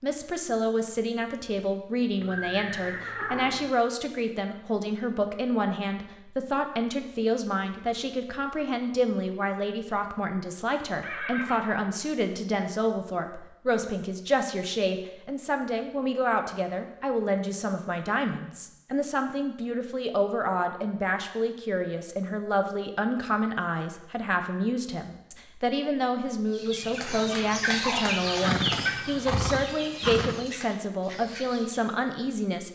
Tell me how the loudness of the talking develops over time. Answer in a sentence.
The loudness of the talking stays about the same.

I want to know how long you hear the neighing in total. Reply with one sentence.
You can hear the neighing for 4 seconds altogether.